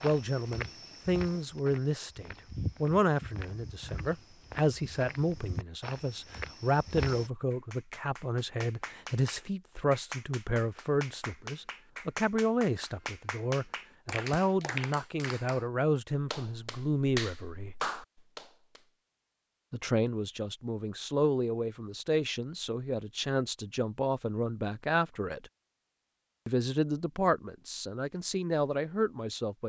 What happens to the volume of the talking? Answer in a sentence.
The loudness of the talking stays about the same.